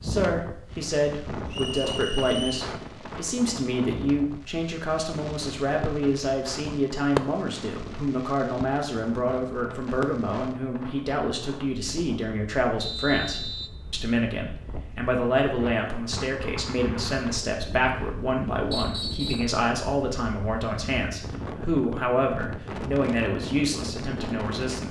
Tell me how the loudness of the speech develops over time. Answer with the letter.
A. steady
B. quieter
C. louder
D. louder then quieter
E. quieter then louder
A.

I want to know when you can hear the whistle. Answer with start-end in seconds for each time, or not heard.
1.5-2.5, 12.8-13.7, 18.7-19.6.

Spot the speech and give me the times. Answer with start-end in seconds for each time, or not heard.
0.0-24.8.